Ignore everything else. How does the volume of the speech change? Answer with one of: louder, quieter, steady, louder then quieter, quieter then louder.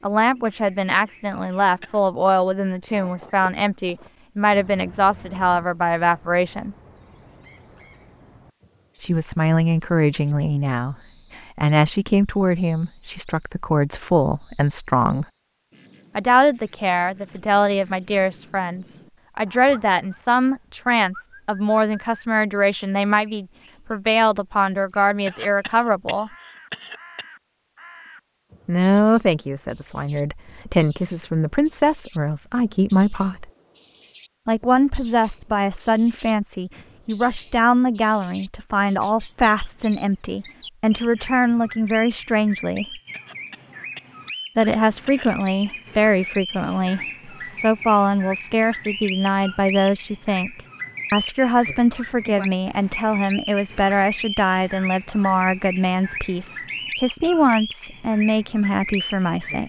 steady.